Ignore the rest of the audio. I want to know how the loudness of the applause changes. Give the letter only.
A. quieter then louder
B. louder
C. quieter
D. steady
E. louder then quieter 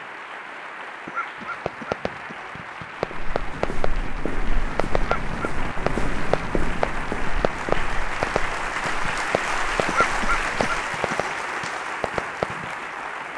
B.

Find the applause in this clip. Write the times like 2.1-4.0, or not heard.
0.0-13.3.